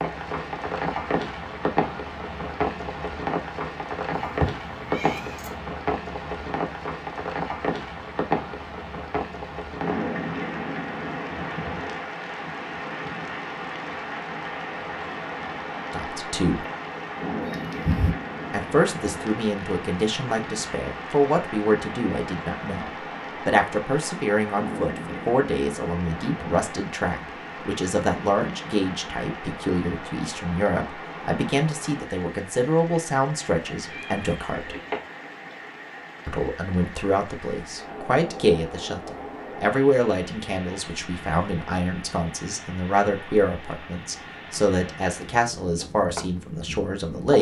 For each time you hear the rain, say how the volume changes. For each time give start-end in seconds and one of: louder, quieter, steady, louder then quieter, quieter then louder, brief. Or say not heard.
0.0-47.3 quieter.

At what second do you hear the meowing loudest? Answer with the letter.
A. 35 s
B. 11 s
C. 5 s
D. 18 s
D.